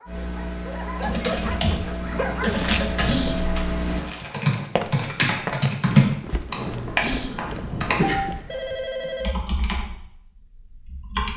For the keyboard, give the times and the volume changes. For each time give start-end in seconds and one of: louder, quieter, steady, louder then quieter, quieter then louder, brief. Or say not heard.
0.1-11.3 louder then quieter.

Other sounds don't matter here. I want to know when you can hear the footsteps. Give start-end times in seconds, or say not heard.
2.4-8.8.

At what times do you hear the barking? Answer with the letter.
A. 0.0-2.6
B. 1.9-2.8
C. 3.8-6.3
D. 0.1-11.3
A.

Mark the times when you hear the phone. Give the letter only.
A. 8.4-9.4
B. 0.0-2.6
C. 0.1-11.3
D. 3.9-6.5
A.